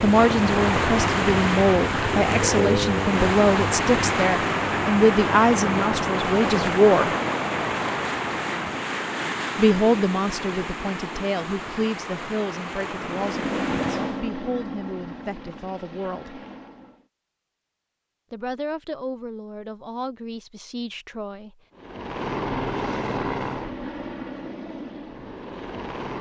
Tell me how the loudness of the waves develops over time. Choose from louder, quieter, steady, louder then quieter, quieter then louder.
quieter.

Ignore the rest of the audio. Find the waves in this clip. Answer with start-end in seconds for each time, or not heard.
0.0-14.2.